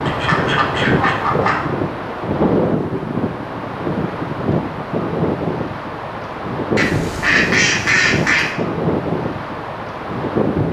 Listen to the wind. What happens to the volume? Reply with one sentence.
The loudness of the wind stays about the same.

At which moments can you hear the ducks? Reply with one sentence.
You can hear the ducks from 0.1 to 1.6 s and from 6.8 to 8.5 s.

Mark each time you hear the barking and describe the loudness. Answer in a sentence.
You can't hear the barking here.